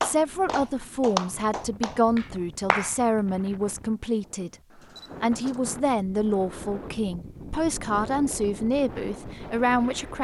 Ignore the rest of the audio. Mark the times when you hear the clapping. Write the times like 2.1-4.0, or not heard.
0.0-3.0.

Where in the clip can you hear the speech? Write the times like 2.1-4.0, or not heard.
0.0-4.5, 5.2-10.1.